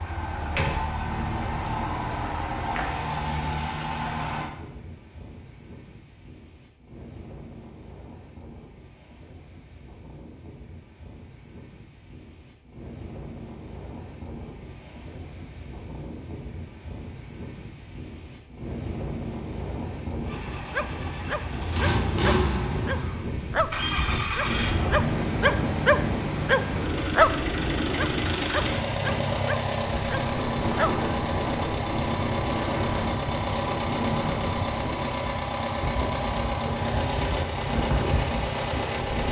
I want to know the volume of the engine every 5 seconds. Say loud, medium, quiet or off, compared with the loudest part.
loud, off, off, off, loud, loud, loud, loud.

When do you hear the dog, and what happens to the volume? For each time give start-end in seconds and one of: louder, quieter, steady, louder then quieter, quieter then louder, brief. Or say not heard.
20.6-31.1 louder then quieter.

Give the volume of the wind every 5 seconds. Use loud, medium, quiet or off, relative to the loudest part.
medium, quiet, quiet, medium, loud, loud, loud, loud.